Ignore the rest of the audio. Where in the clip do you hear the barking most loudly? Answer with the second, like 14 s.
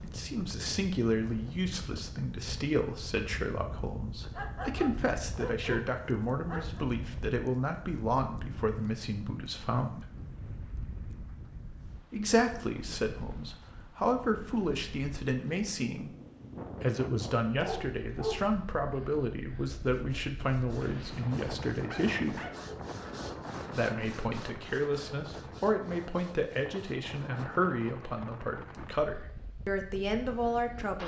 18 s.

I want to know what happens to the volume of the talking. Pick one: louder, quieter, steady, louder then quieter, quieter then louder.
steady.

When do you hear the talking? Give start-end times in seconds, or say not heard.
0.0-10.1, 12.1-16.1, 16.8-22.4, 23.7-31.0.